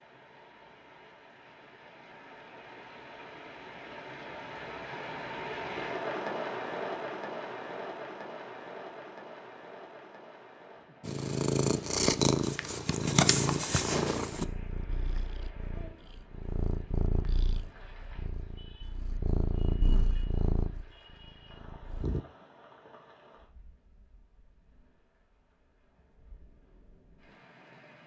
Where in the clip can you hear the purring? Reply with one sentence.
You can hear the purring from 11.1 to 22.2 s.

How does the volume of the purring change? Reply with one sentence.
The loudness of the purring goes down.